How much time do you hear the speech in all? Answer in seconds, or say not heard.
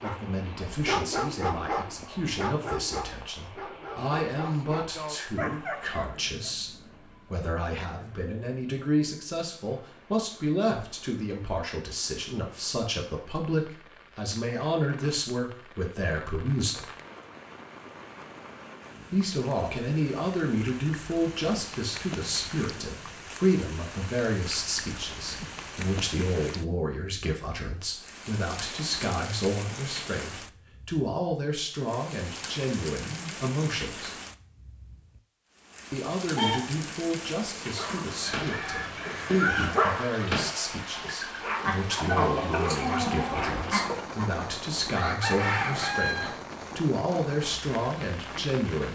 45 s.